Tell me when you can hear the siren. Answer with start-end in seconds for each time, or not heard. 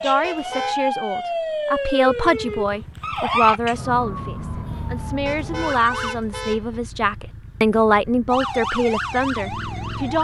0.0-6.2, 8.2-10.2.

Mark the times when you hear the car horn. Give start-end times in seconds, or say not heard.
0.2-0.8, 5.2-6.8.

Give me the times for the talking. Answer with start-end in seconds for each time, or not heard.
0.0-10.2.